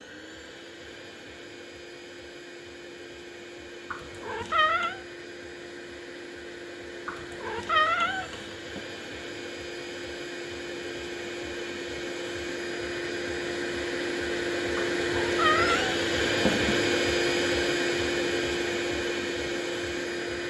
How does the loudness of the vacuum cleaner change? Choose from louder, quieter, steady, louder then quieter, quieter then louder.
louder.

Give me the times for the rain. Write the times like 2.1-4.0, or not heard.
not heard.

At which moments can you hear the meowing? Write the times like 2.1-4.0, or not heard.
3.9-5.0, 7.0-8.8, 14.8-16.9.